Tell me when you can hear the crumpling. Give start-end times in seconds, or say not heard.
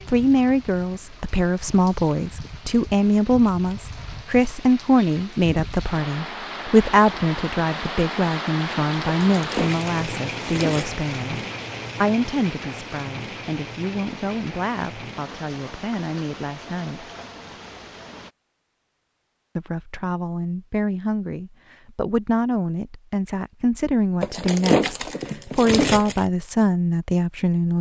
9.3-10.9, 24.2-26.2.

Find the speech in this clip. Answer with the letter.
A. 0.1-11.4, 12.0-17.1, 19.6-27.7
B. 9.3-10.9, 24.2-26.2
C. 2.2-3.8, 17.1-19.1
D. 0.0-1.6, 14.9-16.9
A.